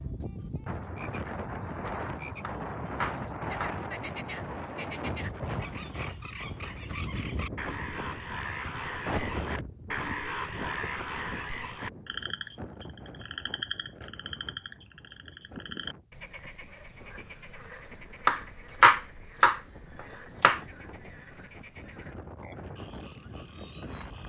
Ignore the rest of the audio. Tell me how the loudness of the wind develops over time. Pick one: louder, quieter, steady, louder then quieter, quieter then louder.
quieter then louder.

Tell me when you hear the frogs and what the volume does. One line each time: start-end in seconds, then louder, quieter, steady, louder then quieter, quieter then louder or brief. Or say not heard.
0.0-24.2 louder then quieter.